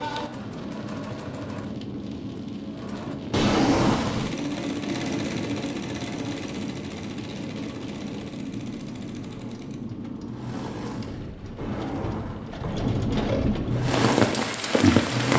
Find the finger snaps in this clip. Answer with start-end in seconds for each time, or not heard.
not heard.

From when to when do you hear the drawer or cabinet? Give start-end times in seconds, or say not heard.
3.3-4.3, 11.6-12.9.